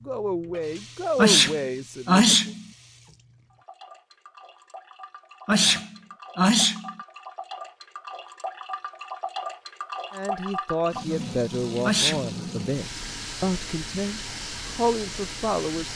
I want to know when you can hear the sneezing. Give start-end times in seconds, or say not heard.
1.1-2.6, 5.5-7.0, 11.8-12.3.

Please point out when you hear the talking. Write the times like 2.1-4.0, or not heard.
0.1-2.5, 10.1-15.9.